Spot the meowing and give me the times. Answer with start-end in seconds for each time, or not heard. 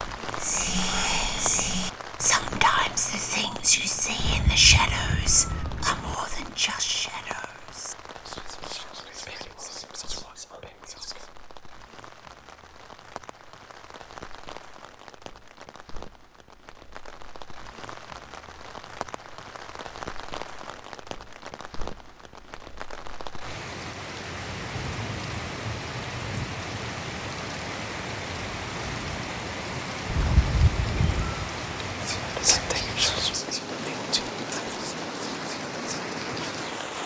4.2-6.2, 30.1-31.5.